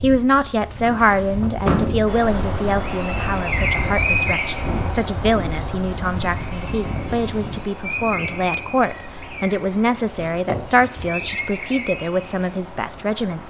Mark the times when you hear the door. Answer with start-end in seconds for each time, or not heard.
0.8-2.1, 10.2-11.4.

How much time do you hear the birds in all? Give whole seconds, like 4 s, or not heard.
11 s.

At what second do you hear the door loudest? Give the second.
2 s.